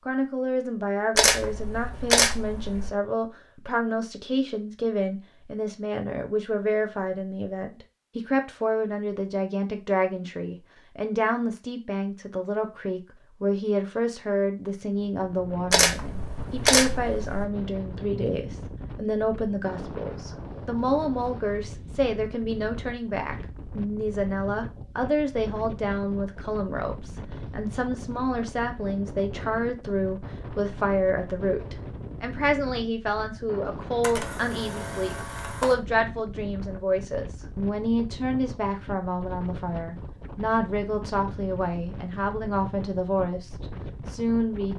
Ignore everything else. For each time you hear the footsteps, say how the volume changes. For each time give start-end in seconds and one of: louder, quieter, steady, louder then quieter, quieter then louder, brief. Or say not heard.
not heard.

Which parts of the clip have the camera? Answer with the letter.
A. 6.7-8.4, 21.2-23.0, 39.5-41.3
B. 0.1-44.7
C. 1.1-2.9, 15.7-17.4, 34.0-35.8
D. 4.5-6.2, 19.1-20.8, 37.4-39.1
C.